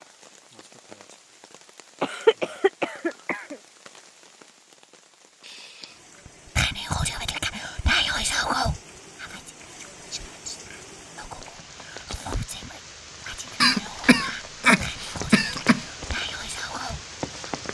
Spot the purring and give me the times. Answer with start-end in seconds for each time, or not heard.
not heard.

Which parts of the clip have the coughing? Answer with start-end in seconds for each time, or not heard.
2.0-3.5, 13.6-15.8.